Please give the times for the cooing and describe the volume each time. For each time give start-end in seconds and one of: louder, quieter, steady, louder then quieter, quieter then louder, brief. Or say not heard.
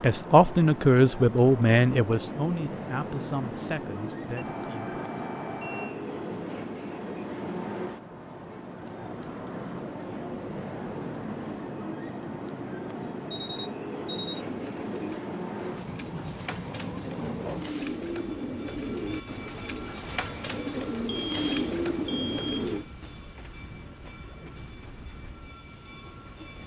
14.4-22.9 louder.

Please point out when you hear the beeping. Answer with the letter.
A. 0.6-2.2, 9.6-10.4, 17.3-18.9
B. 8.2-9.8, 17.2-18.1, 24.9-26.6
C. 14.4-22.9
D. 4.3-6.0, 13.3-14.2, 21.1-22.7
D.